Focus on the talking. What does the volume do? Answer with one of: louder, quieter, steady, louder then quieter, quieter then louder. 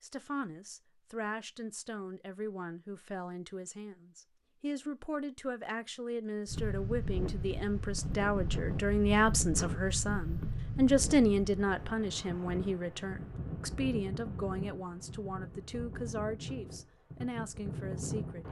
louder then quieter.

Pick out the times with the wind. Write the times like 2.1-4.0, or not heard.
6.5-18.4.